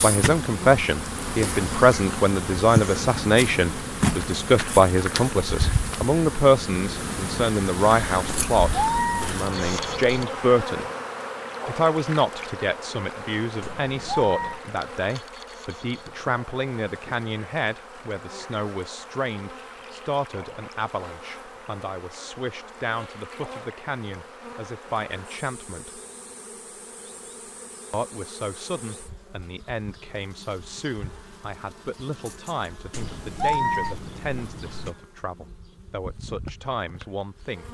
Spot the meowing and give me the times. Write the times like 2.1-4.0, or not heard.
8.2-10.2, 13.6-14.6, 32.9-34.9.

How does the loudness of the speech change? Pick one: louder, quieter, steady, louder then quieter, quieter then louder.
quieter.